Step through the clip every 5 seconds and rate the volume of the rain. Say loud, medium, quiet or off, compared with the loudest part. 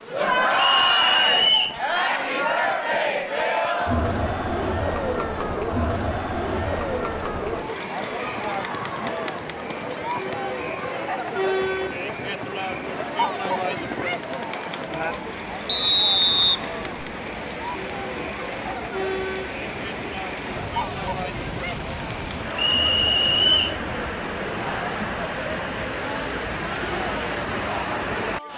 quiet, medium, medium, medium, loud, loud.